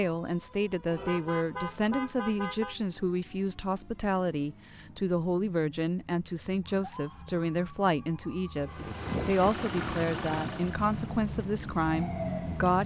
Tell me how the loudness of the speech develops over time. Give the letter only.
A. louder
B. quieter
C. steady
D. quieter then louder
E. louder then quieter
C.